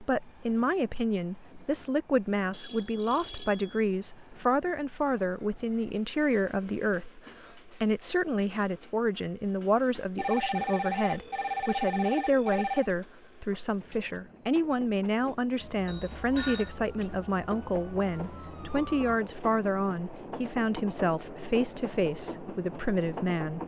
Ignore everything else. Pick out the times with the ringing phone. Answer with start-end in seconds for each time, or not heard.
2.5-3.9, 10.2-12.9, 15.8-16.7.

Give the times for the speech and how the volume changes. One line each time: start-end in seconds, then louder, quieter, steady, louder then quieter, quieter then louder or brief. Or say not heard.
0.0-23.6 steady.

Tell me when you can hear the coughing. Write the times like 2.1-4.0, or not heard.
not heard.